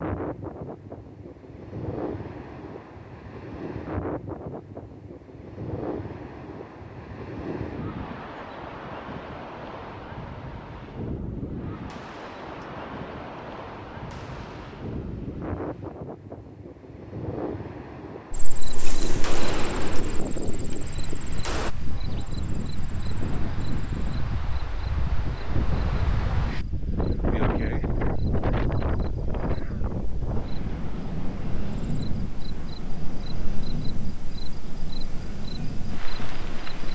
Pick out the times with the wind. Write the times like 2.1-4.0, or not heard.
0.0-36.8.